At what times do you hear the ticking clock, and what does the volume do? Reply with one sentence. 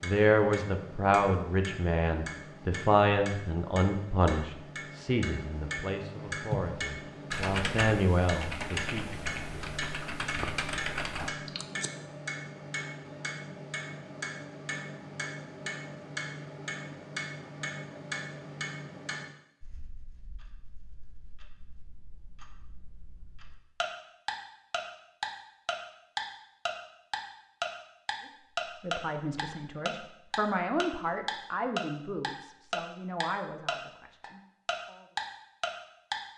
The ticking clock can be heard from 0.0 to 36.2 s, getting louder.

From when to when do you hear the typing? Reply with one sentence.
You can hear the typing from 6.4 to 11.9 s.